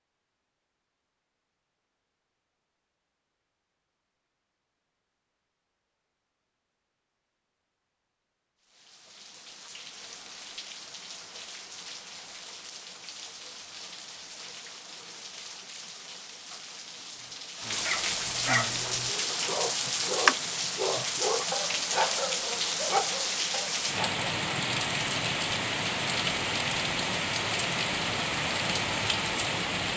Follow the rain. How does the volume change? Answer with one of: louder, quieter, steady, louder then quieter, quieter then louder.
louder.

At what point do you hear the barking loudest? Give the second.
20 s.